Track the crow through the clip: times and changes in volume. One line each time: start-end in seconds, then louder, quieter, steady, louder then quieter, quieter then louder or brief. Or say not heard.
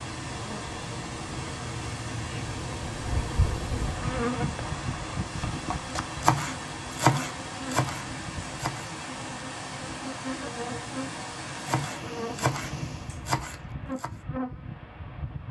not heard.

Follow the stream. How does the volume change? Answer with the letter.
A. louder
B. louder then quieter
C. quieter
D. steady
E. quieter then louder
D.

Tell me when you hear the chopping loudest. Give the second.
7 s.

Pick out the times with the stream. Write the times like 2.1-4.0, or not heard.
0.0-13.3.